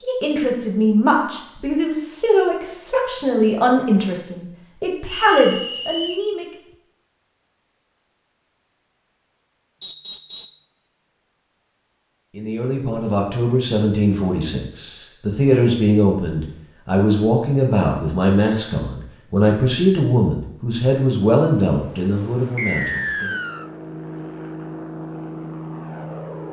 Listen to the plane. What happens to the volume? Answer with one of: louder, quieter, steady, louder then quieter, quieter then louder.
louder.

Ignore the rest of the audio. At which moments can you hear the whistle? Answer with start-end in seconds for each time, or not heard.
5.0-6.2, 9.8-10.7, 22.6-23.7.